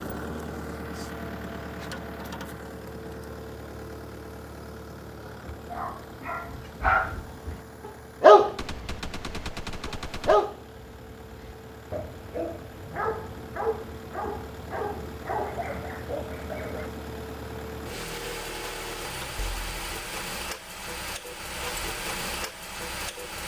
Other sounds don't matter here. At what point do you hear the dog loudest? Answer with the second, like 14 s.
8 s.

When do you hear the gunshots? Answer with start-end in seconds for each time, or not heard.
8.6-10.4.